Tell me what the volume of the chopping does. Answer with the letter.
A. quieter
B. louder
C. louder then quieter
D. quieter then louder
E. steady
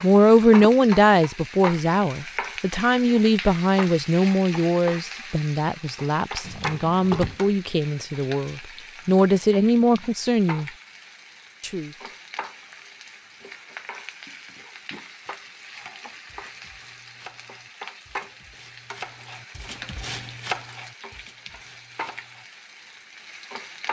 C.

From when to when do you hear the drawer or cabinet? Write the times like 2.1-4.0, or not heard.
6.4-7.4, 19.6-20.4.